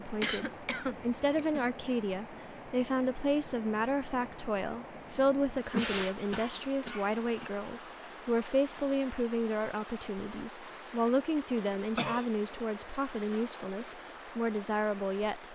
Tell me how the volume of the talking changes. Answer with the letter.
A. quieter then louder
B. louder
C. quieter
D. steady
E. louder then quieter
D.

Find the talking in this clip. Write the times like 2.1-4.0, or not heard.
0.0-15.5.